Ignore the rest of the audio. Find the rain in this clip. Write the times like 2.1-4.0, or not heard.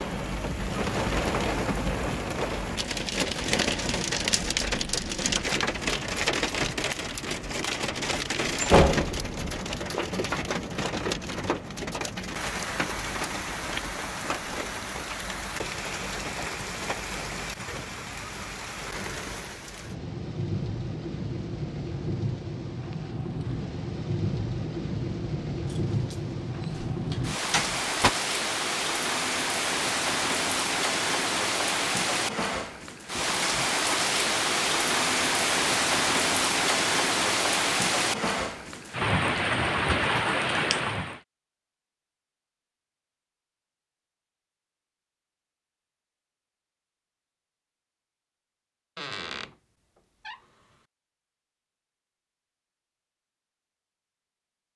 0.0-41.2.